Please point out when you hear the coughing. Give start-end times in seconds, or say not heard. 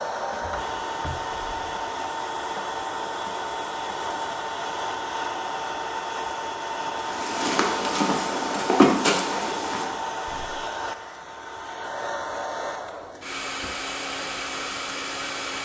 not heard.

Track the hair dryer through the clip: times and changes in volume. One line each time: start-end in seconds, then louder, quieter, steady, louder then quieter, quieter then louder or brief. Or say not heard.
0.0-15.6 steady.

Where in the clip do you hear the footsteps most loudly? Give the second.
9 s.